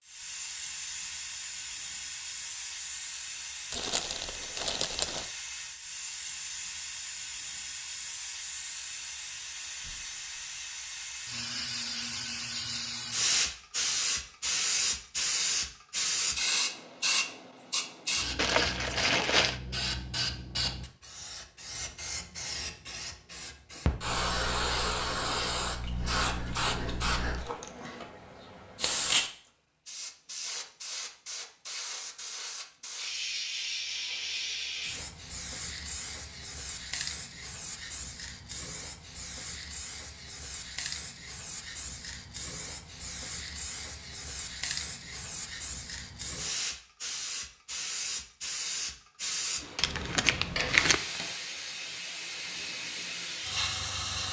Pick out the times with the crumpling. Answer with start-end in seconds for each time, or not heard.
3.7-5.3, 18.4-19.6, 49.8-51.0.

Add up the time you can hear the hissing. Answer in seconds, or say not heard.
54 s.